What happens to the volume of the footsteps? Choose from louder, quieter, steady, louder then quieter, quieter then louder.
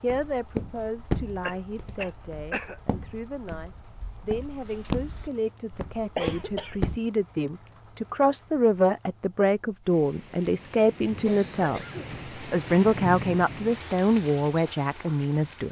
quieter then louder.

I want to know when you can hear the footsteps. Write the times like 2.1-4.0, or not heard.
0.1-7.0.